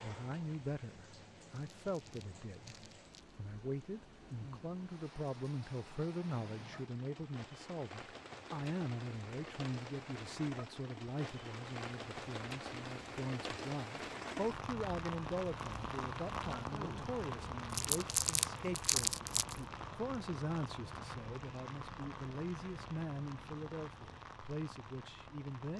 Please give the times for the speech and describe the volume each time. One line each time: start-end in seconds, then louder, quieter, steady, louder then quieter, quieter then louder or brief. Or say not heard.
0.0-25.7 steady.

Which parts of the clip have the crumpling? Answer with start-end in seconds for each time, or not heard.
1.5-3.4, 17.7-19.6.